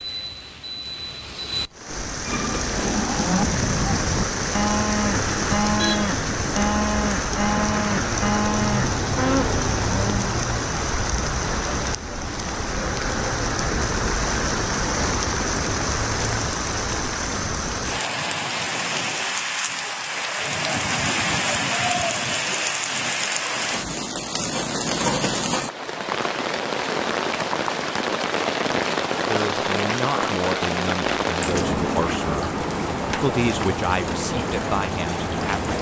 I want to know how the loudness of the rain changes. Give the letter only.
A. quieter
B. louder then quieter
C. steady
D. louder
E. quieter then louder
C.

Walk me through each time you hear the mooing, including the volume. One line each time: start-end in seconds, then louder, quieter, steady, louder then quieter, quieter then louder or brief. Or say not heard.
2.2-10.3 steady.